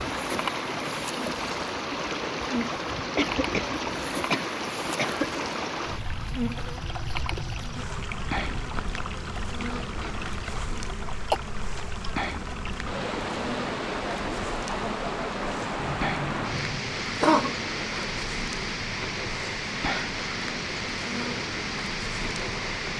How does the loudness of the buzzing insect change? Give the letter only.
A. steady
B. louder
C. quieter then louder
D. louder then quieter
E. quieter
A.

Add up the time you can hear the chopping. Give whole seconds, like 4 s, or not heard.
not heard.